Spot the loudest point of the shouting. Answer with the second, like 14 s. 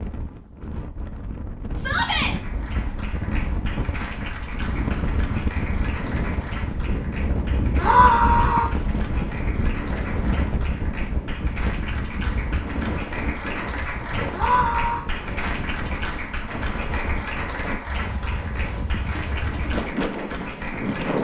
8 s.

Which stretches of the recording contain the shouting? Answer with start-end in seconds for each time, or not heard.
1.8-2.4, 7.8-8.7, 14.3-15.1.